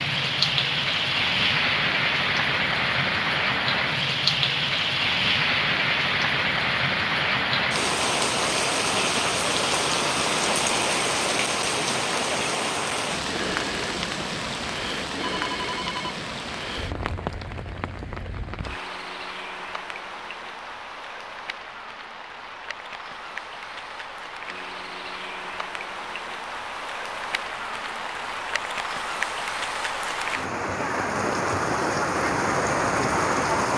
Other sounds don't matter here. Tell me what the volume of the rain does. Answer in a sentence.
The volume of the rain goes down, then up.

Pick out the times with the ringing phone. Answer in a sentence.
You can hear the ringing phone from 15.1 to 16.1 s.